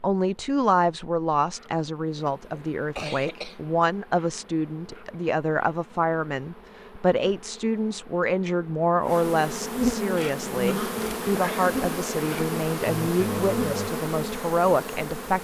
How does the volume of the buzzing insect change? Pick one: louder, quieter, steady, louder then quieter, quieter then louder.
louder.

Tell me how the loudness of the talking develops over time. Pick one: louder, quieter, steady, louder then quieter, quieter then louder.
steady.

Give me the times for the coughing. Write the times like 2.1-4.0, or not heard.
2.5-3.5, 10.7-11.8.